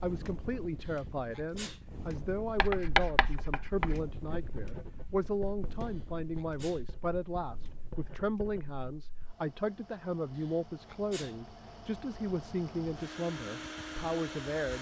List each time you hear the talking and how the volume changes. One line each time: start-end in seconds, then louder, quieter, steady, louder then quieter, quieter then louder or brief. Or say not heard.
0.0-14.7 steady.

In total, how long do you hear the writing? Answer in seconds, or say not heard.
7 s.